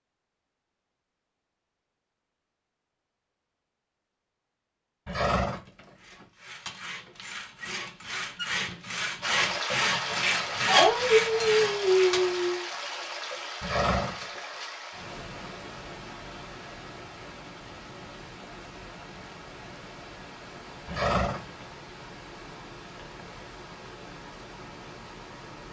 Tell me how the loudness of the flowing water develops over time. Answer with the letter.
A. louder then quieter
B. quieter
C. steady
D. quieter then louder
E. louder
B.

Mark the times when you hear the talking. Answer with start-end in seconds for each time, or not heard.
not heard.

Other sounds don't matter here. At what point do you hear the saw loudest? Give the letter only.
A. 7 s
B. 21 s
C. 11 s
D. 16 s
C.